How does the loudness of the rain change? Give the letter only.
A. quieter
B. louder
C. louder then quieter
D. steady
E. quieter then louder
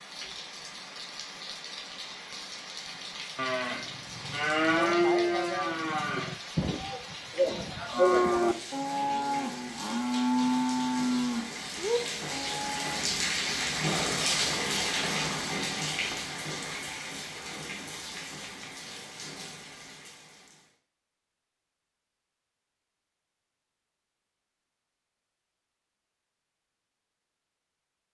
C.